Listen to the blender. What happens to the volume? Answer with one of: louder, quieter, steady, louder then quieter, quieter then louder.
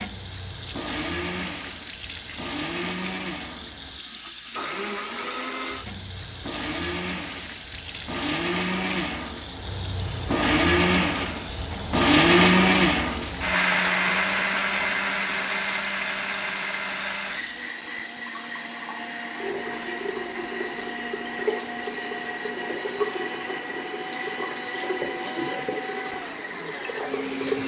louder then quieter.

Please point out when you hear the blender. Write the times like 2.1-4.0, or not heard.
0.0-27.6.